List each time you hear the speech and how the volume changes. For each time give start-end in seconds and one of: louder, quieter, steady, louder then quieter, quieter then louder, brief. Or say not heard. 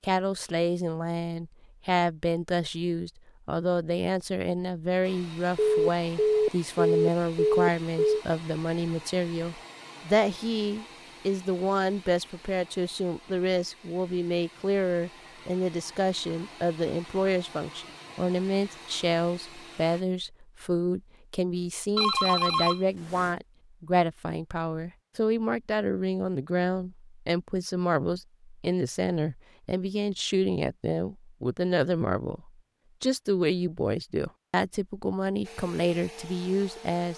0.0-37.1 steady.